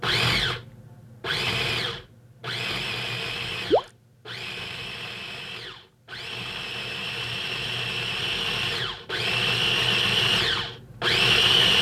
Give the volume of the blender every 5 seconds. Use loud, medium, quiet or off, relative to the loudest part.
medium, medium, loud.